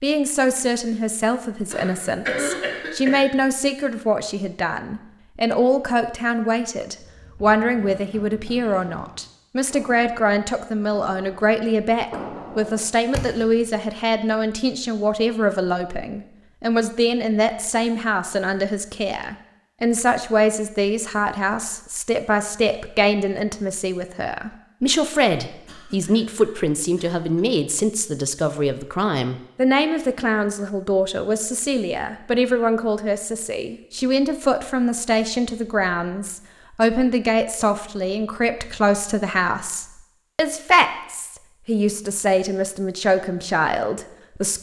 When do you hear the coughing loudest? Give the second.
2 s.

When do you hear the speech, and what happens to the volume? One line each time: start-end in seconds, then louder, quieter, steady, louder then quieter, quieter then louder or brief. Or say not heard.
0.0-44.5 steady.